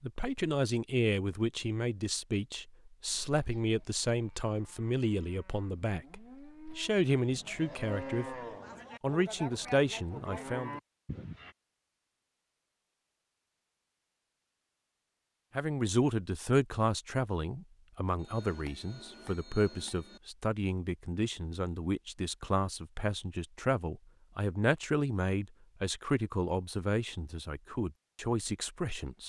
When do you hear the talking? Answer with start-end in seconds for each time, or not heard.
0.0-8.3, 9.0-10.8, 15.6-29.2.